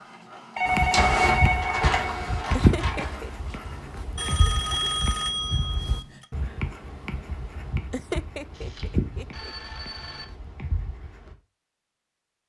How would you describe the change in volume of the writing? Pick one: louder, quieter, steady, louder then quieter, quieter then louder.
quieter.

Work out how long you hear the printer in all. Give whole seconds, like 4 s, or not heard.
4 s.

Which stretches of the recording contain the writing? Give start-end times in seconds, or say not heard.
0.7-11.3.